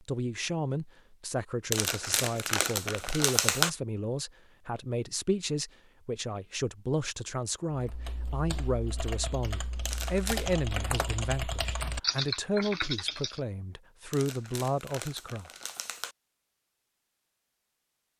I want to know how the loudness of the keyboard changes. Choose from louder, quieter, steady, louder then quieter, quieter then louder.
louder.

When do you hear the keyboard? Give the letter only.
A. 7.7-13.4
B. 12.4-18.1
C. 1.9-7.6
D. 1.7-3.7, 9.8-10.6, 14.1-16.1
A.